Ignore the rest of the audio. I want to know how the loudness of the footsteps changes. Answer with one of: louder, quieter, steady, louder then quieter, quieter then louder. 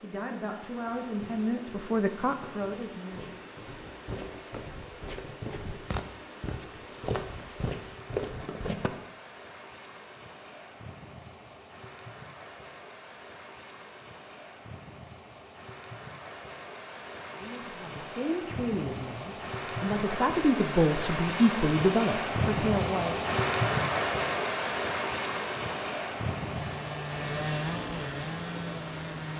louder.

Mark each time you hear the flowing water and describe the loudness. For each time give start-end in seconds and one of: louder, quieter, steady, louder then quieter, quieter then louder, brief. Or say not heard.
0.0-29.3 louder.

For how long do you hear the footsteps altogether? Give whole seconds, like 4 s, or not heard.
8 s.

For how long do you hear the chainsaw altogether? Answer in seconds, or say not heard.
3 s.